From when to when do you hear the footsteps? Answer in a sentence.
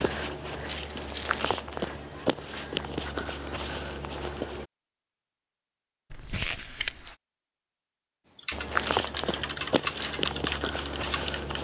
The footsteps can be heard from 0.0 to 4.7 s and from 8.5 to 11.5 s.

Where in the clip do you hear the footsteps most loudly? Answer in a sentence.
The loudest moment of the footsteps is at 9 seconds.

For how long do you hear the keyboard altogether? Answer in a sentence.
You can hear the keyboard for 3 seconds altogether.